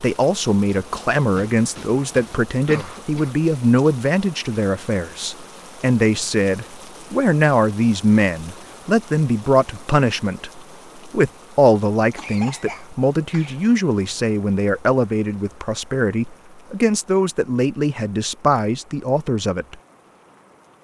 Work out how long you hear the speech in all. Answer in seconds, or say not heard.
20 s.